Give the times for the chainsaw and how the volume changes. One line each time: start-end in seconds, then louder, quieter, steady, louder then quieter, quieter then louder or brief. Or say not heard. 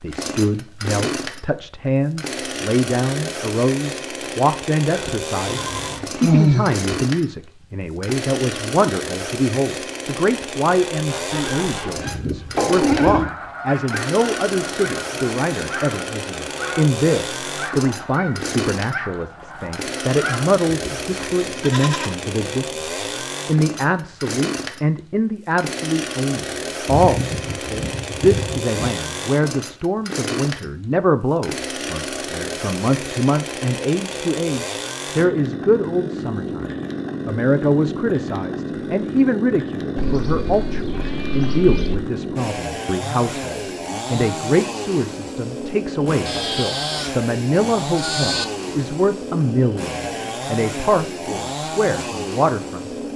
0.0-53.1 steady.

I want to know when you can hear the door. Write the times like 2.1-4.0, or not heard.
5.5-6.1.